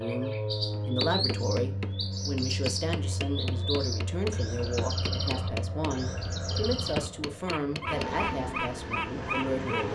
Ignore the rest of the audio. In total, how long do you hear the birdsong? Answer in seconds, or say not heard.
10 s.